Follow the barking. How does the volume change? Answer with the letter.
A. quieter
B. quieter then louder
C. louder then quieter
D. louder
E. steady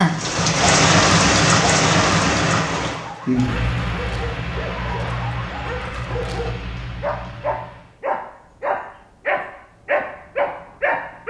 D.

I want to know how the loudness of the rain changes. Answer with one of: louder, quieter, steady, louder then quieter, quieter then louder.
quieter.